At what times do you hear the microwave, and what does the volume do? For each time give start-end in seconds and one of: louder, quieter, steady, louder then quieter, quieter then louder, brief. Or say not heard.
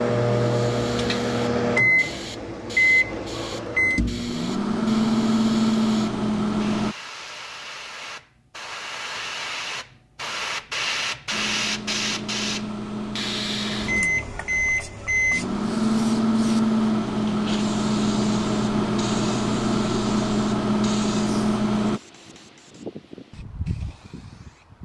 0.0-7.0 steady
11.3-22.0 louder.